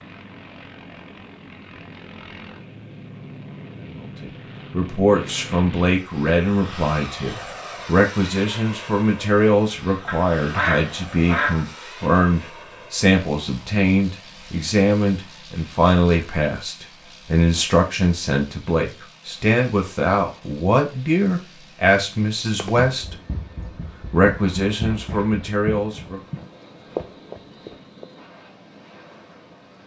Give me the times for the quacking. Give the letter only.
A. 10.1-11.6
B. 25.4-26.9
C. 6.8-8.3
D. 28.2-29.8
A.